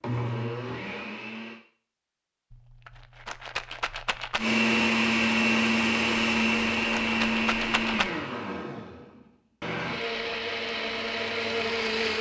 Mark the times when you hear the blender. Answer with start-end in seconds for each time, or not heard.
0.0-1.6, 4.3-12.1.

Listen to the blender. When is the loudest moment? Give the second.
5 s.